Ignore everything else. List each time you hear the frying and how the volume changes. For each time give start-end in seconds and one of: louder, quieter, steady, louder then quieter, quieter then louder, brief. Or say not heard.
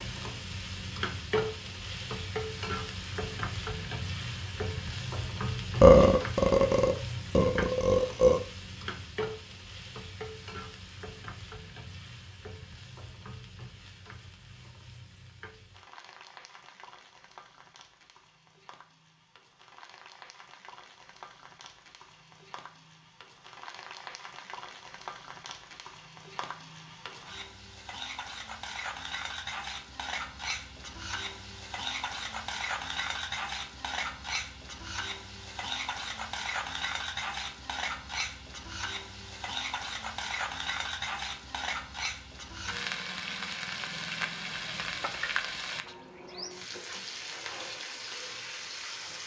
0.0-49.2 quieter then louder.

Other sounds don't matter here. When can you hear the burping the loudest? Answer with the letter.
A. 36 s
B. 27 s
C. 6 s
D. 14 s
C.